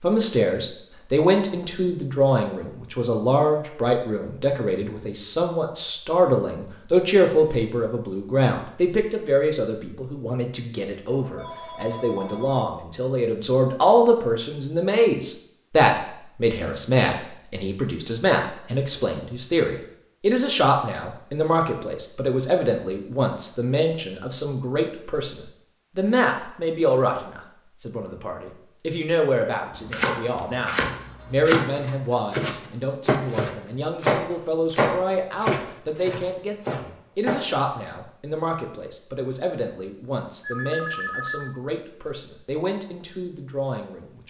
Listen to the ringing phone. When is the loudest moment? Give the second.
41 s.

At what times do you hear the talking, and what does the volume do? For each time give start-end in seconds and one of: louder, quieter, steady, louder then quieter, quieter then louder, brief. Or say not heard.
0.0-44.2 quieter.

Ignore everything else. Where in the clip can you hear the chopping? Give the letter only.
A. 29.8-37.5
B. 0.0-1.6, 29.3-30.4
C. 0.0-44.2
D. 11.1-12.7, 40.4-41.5
A.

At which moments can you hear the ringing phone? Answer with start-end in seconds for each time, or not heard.
11.1-12.7, 40.4-41.5.